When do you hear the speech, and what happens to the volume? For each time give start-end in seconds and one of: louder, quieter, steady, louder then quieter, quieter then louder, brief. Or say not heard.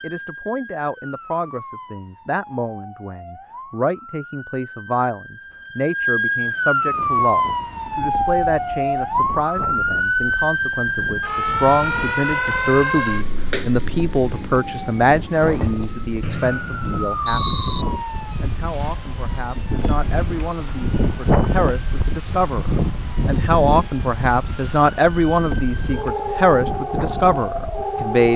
0.0-17.6 louder
18.4-28.3 louder.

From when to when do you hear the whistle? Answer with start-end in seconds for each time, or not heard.
16.2-17.9.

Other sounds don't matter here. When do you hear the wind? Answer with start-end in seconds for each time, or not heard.
6.8-28.3.